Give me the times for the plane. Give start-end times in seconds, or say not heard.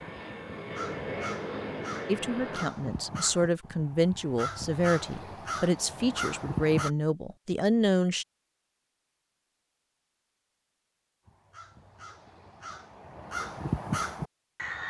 0.0-2.6.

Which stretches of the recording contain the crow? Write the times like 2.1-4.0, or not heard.
0.0-6.9, 11.2-14.8.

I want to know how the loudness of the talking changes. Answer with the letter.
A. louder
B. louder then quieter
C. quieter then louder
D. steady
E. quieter
D.